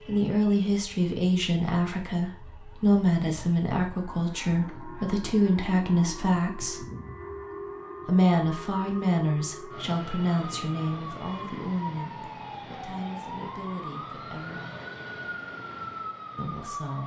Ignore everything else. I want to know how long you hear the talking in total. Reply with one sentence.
You can hear the talking for 14 seconds altogether.